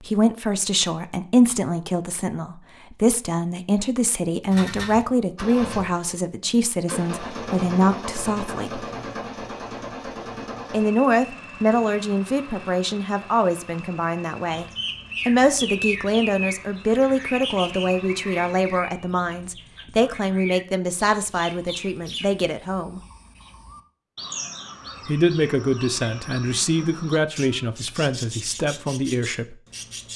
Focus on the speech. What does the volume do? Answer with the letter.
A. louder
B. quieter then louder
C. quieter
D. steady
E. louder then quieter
D.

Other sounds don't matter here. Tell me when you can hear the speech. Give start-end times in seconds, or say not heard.
0.0-8.8, 10.7-14.7, 15.2-23.0, 25.1-29.6.